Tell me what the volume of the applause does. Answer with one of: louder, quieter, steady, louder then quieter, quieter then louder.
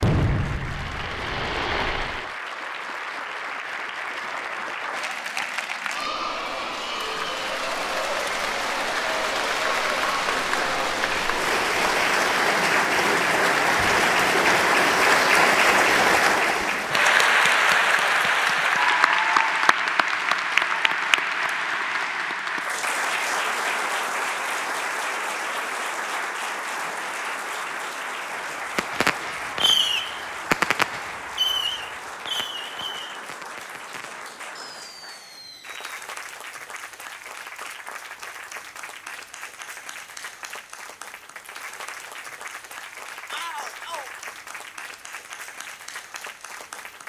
louder then quieter.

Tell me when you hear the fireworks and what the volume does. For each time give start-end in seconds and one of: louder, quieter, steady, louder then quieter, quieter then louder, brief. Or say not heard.
0.0-2.3 brief
28.8-35.9 quieter.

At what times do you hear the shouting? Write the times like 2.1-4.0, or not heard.
43.2-44.2.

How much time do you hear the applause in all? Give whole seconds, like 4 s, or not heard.
47 s.